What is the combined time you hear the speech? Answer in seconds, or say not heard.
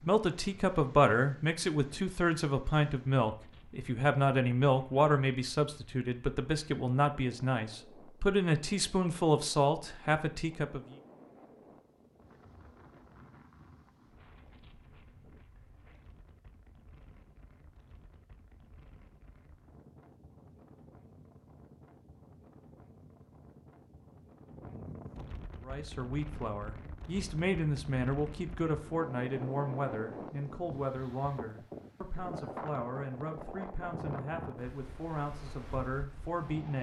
22 s.